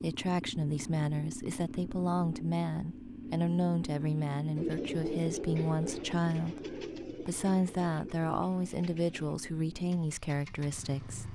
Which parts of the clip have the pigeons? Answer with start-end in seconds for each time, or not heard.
4.5-9.3.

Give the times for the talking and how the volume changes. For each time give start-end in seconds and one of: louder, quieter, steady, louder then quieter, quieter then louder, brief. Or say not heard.
0.0-11.3 steady.